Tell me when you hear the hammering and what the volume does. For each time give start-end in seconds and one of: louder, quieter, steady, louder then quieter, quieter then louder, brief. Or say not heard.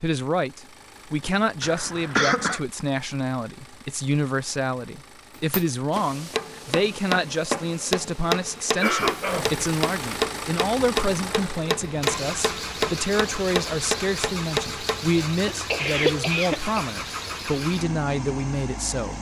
5.3-15.1 steady.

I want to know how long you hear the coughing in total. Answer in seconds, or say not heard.
4 s.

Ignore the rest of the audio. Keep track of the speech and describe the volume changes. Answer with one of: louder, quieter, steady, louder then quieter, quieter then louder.
steady.